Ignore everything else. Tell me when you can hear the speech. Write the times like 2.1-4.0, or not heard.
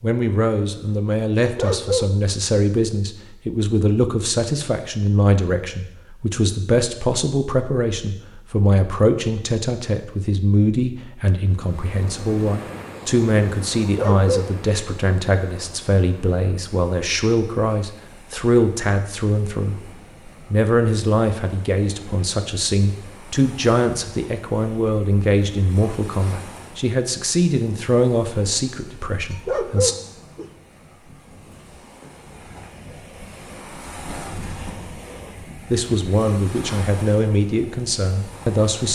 0.0-19.8, 20.5-29.9, 35.7-38.9.